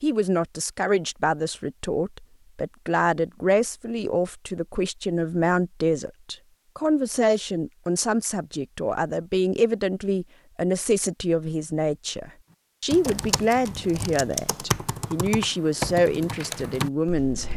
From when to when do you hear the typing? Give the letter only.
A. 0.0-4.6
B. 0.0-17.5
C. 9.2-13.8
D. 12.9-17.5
D.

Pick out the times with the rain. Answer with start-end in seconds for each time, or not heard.
not heard.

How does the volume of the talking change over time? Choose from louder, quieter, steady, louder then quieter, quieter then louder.
steady.